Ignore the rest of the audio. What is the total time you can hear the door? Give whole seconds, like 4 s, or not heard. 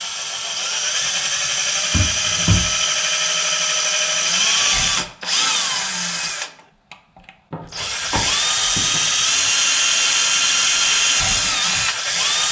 2 s.